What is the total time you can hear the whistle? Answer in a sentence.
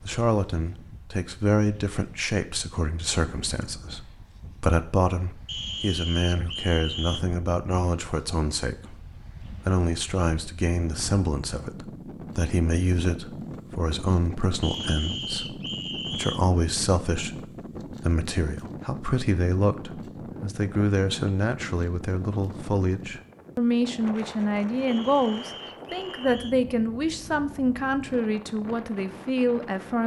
You can hear the whistle for 5 seconds altogether.